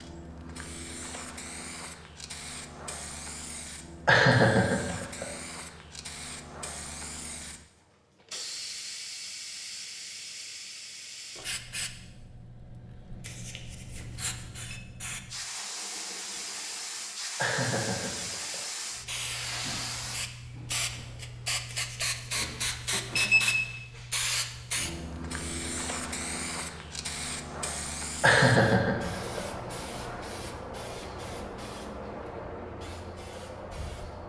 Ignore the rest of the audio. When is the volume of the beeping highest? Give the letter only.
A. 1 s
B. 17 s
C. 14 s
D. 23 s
D.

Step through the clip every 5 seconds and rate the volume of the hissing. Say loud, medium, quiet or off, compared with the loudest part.
medium, medium, medium, loud, loud, loud, medium.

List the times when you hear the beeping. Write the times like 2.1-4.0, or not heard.
13.2-14.8, 21.7-23.6.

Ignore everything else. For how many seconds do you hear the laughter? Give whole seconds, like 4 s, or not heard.
4 s.